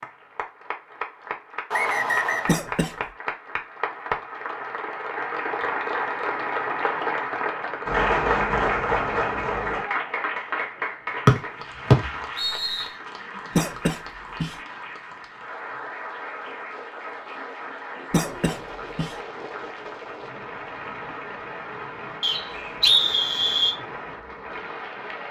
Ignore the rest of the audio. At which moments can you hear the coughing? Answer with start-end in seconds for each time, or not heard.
2.5-3.0, 13.6-14.6, 18.1-19.1.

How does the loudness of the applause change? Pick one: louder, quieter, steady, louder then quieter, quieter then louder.
louder then quieter.